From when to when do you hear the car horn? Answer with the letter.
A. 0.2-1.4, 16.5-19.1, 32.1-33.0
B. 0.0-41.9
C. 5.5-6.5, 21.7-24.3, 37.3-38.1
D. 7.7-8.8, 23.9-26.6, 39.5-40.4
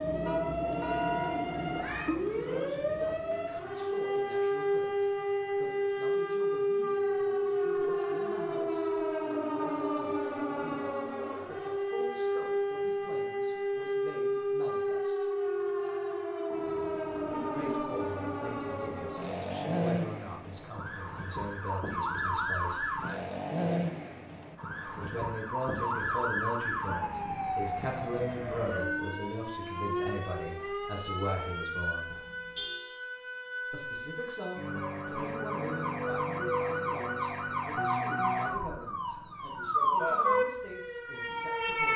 A.